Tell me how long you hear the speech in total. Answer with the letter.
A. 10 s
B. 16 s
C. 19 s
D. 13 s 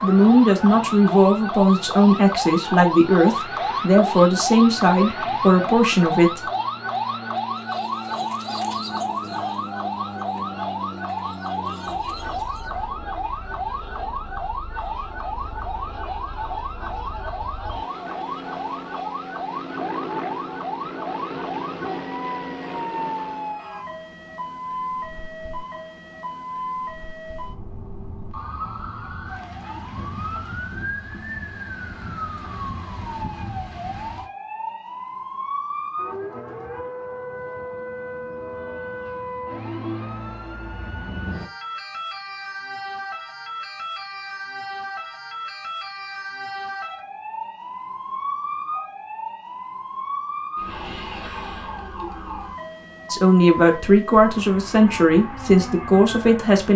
A.